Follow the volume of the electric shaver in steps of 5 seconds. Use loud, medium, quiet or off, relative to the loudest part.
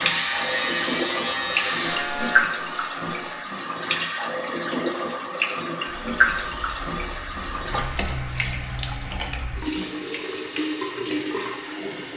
loud, quiet, off.